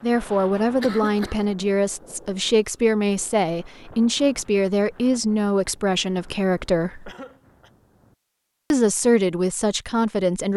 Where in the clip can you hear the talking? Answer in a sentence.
You can hear the talking from 0.0 to 7.1 s and from 8.7 to 10.5 s.